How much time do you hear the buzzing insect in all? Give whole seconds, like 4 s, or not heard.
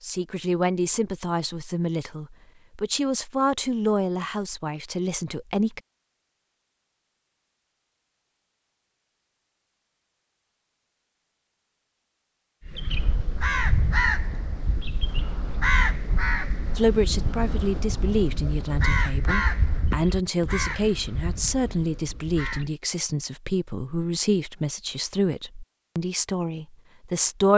not heard.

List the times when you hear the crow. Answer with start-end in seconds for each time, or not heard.
12.7-22.8.